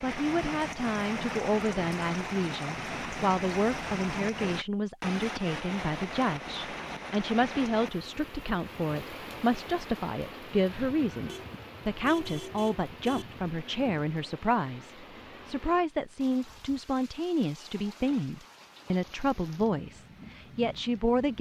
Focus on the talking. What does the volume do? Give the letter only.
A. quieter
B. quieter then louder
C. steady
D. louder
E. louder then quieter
C.